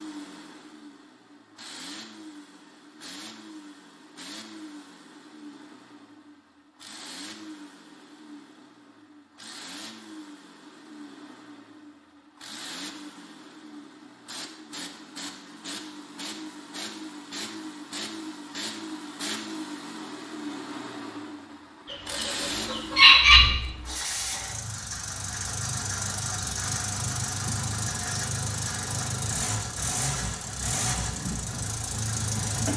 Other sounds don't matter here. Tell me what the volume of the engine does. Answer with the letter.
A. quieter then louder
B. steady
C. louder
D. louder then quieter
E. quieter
C.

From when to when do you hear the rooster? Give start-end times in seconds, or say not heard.
21.9-23.4.